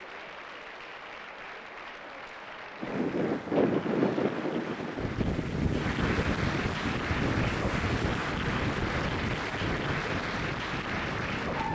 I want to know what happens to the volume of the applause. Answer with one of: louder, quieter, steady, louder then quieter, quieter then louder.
louder.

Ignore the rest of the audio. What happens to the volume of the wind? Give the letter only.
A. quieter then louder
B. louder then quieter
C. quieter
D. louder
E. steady
C.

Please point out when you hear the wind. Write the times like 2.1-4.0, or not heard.
2.8-11.7.